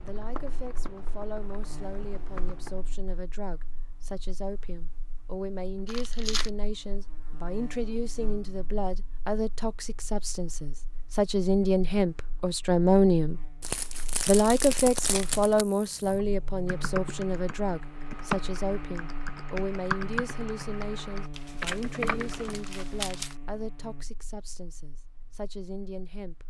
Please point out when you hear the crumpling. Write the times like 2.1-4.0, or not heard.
5.8-6.5, 13.6-15.7, 21.4-23.4.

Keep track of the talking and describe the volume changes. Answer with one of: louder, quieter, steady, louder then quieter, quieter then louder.
louder then quieter.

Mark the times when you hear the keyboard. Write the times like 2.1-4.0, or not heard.
0.0-3.0, 16.0-22.7.